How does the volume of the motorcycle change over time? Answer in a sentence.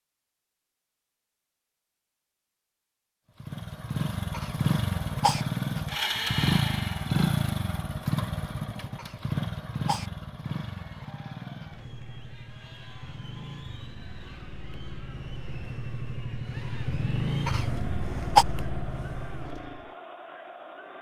The loudness of the motorcycle goes down, then up.